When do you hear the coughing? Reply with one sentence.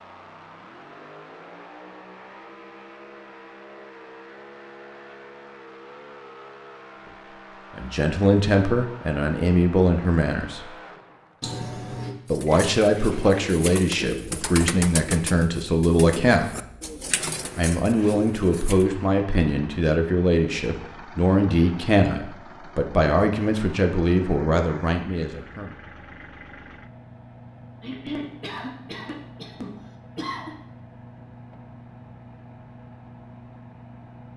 You can hear the coughing from 11.4 to 12.2 s and from 27.8 to 30.6 s.